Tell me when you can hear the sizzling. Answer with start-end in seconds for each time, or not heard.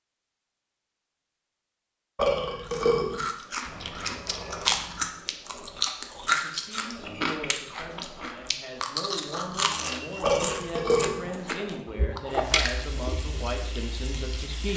12.2-14.7.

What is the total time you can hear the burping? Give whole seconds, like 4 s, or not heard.
2 s.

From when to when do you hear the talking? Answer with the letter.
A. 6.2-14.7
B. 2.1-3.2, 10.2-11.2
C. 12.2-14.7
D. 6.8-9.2
A.